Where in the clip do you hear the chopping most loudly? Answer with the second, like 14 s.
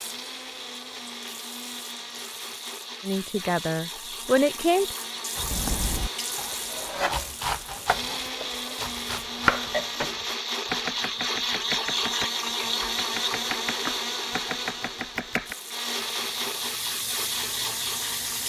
10 s.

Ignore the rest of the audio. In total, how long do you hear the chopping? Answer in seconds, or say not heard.
10 s.